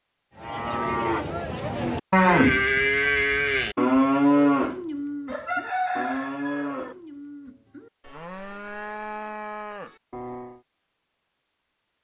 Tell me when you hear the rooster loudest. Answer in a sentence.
The loudest moment of the rooster is at 6 seconds.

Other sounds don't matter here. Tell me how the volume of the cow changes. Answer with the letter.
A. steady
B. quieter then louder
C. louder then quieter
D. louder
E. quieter
E.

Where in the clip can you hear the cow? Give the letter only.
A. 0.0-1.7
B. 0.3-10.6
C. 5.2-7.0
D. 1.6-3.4
B.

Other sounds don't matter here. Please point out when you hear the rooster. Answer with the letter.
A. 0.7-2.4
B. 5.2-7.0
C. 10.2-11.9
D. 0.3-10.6
B.